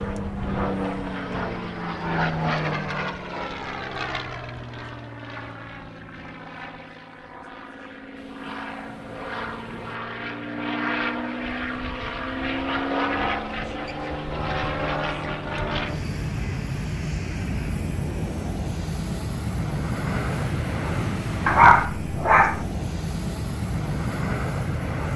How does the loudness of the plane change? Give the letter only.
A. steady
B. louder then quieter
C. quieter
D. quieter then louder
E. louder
D.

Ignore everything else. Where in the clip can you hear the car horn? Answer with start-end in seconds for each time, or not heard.
not heard.